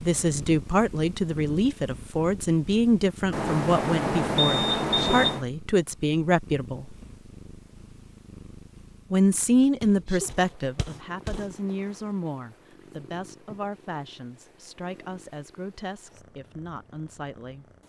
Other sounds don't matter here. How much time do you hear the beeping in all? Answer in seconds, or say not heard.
2 s.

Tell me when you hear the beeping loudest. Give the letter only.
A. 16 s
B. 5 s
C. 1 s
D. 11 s
B.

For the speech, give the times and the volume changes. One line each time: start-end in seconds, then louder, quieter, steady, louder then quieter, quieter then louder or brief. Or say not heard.
0.0-7.0 steady
9.1-17.6 quieter.